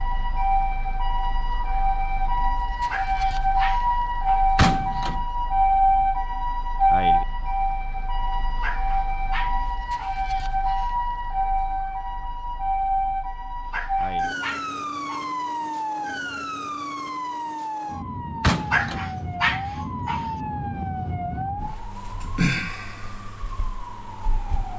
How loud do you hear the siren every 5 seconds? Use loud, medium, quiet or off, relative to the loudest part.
loud, loud, loud, medium, medium.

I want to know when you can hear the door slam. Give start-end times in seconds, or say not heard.
4.5-5.2, 18.4-19.1.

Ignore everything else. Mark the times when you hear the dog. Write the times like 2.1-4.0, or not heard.
2.8-4.5, 8.6-10.2, 13.7-15.3, 18.7-20.3.